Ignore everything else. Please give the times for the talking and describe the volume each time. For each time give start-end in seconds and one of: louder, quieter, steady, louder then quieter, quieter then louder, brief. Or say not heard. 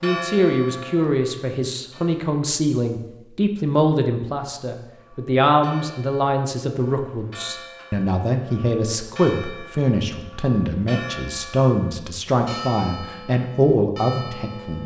0.0-14.8 steady.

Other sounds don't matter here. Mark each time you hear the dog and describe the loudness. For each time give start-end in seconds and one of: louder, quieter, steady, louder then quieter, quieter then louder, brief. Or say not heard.
not heard.